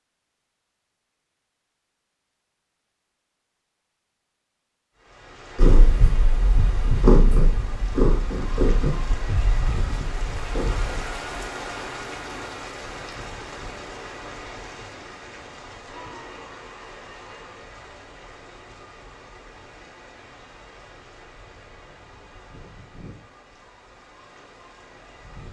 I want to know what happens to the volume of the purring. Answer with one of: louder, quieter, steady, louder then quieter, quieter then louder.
louder then quieter.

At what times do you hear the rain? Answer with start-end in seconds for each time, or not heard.
5.0-25.4.